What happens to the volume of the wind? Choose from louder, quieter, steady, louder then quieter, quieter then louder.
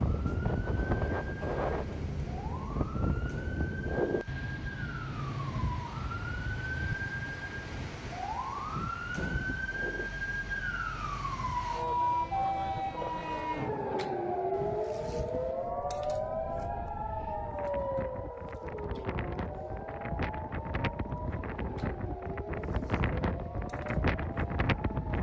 quieter then louder.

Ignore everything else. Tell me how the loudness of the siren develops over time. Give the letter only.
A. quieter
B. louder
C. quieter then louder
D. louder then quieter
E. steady
D.